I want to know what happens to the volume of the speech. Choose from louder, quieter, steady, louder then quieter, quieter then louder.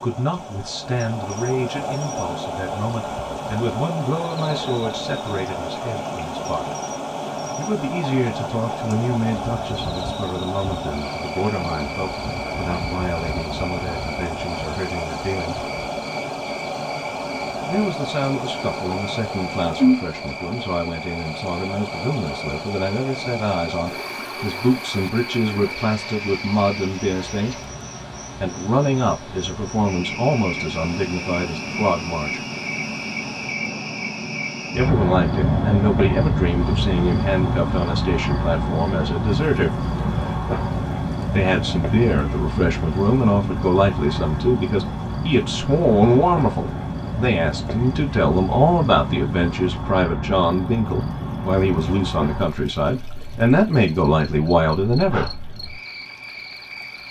louder.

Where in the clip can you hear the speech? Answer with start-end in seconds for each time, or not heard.
0.0-6.8, 7.5-15.7, 17.6-27.6, 28.4-32.4, 34.7-39.8, 41.3-55.3.